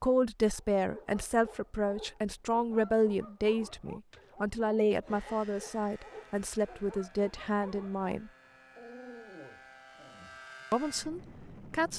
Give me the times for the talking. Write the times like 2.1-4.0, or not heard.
0.0-8.3, 10.7-11.9.